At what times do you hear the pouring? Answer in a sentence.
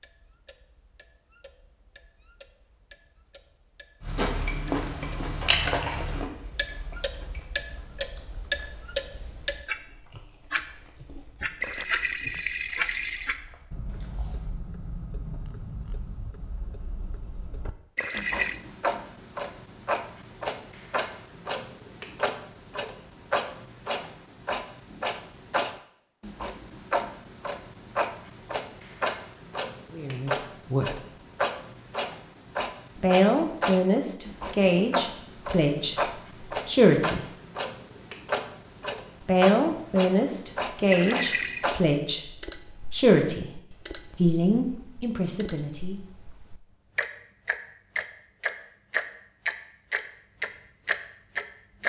You can hear the pouring from 11.6 to 13.3 s, from 17.9 to 18.6 s and from 40.9 to 41.7 s.